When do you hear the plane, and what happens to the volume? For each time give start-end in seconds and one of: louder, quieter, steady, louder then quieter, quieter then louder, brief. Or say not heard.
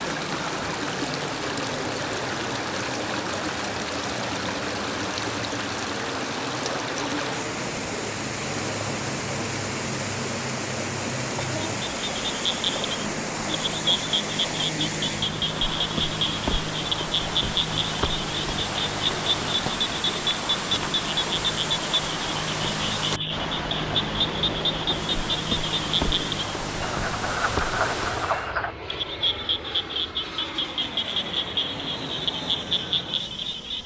0.0-33.8 steady.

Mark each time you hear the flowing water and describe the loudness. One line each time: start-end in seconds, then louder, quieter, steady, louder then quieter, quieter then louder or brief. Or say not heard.
0.0-28.5 steady.